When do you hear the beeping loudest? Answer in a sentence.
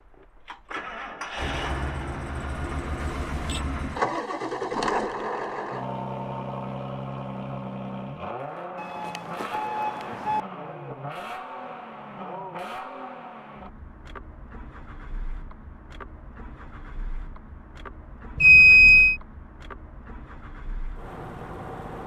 The loudest moment of the beeping is at 19 seconds.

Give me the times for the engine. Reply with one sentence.
You can hear the engine from 0.0 to 22.0 s.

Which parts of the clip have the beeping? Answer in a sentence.
The beeping can be heard from 3.0 to 3.6 s, from 8.8 to 10.4 s and from 18.4 to 19.1 s.